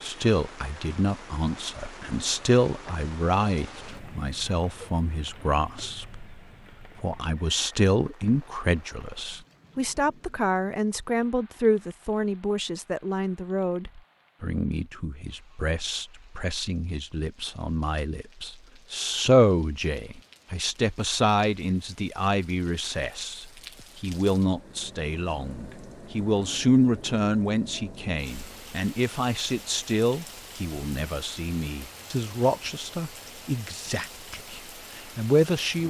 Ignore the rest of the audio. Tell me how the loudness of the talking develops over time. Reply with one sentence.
The loudness of the talking stays about the same.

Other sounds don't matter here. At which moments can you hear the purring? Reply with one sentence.
The purring can't be heard in this clip.